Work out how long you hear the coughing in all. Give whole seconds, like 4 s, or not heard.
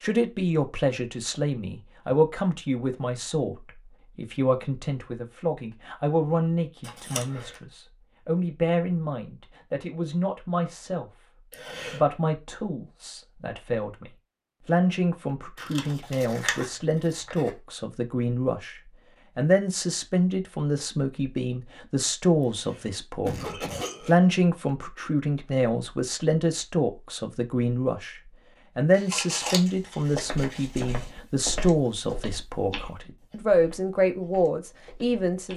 2 s.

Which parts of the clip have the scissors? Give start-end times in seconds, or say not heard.
6.8-7.6, 15.6-17.5, 28.9-31.1.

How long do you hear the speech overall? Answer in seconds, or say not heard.
35 s.